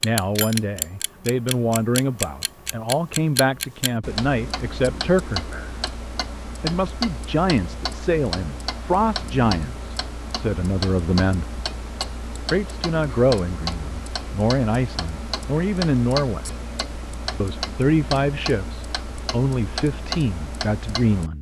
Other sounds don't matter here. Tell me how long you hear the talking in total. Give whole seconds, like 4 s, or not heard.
18 s.